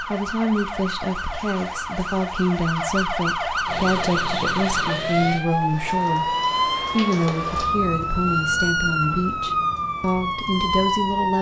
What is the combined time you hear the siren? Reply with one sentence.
You can hear the siren for 11 seconds altogether.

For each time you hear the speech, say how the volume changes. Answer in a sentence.
The speech can be heard from 0.1 to 11.3 s, at a steady volume.